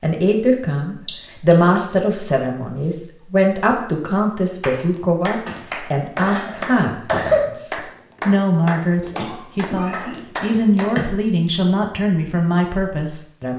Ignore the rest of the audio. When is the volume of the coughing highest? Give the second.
7 s.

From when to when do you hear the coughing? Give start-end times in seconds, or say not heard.
1.1-1.6, 5.5-7.5, 9.1-11.1.